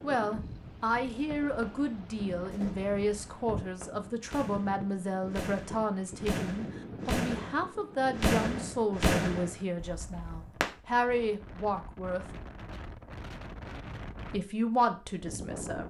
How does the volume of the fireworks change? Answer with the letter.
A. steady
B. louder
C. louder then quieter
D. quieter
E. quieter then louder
B.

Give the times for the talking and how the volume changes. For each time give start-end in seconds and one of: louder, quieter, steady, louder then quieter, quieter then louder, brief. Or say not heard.
0.0-12.2 steady
14.3-15.8 brief.